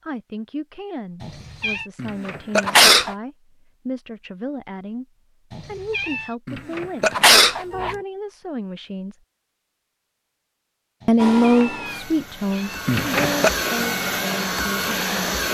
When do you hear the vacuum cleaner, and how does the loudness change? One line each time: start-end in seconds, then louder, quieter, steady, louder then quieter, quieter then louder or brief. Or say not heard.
11.2-15.4 louder.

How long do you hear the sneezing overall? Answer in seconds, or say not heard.
3 s.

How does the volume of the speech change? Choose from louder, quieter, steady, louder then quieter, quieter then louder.
louder then quieter.